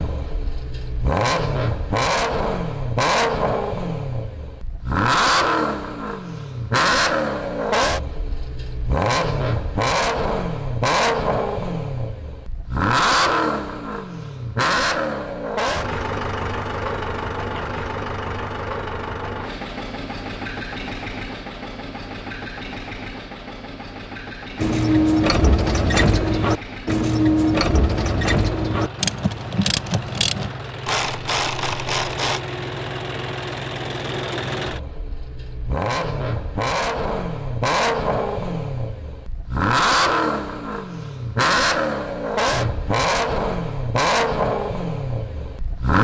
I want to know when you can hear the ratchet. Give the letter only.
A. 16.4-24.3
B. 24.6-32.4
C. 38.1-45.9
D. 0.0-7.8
B.